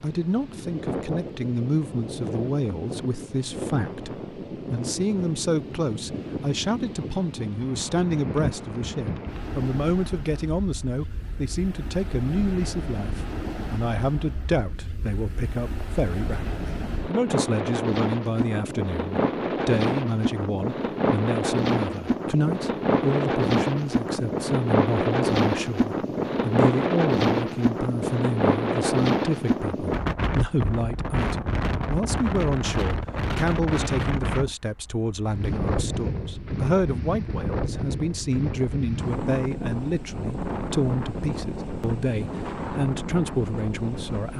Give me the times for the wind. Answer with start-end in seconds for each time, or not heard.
0.0-44.3.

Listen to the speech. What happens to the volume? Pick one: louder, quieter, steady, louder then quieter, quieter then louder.
steady.